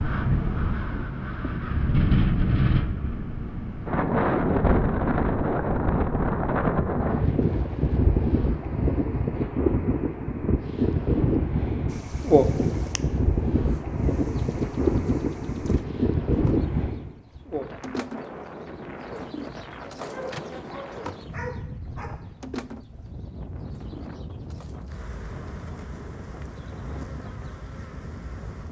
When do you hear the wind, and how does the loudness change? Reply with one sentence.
The wind can be heard from 0.0 to 28.6 s, getting quieter.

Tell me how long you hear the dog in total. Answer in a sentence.
You can hear the dog for 2 seconds altogether.